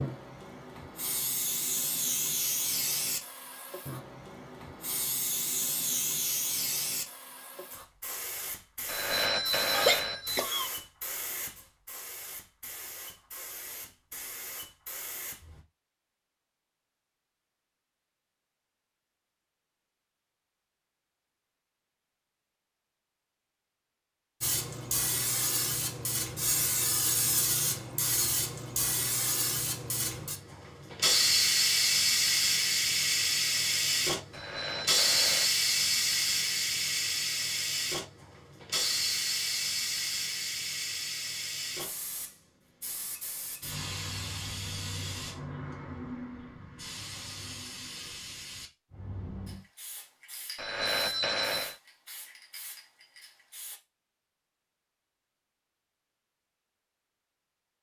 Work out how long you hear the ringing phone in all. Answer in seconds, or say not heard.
4 s.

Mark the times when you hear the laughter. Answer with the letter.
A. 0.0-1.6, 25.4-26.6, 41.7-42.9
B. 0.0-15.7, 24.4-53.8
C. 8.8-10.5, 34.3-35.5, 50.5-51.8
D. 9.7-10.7
D.